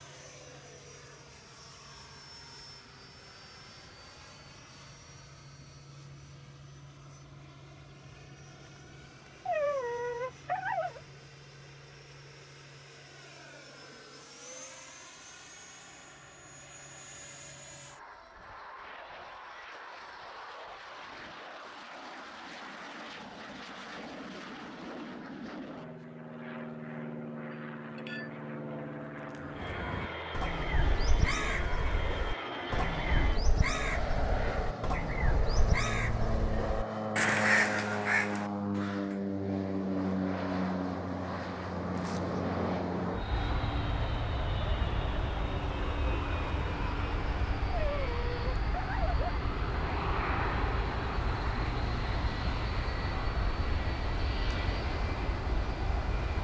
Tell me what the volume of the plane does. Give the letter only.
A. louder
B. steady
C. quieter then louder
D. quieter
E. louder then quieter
A.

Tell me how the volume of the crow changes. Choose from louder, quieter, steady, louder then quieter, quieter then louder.
louder.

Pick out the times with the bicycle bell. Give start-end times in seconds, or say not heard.
27.5-28.3.